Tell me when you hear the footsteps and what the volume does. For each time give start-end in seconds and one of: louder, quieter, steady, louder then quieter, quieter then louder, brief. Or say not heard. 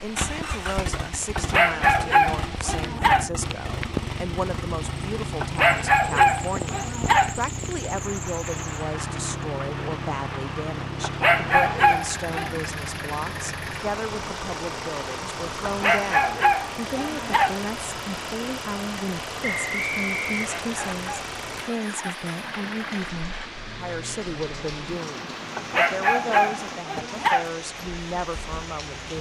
not heard.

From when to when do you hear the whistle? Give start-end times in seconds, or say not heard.
19.4-20.9.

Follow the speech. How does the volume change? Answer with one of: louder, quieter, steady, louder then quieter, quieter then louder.
steady.